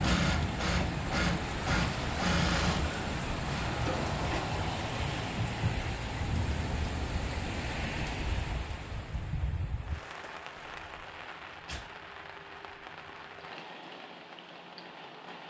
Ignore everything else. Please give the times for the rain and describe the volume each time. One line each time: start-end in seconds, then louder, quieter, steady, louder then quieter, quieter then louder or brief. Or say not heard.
0.0-15.4 quieter.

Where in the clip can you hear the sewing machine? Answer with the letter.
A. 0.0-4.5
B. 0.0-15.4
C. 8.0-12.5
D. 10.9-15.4
A.